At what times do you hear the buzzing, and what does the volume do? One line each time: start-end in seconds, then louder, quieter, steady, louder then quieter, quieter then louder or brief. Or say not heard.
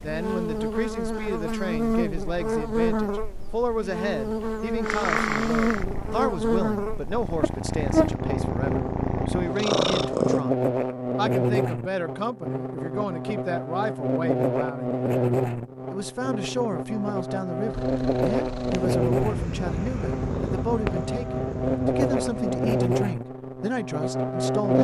0.0-24.7 steady.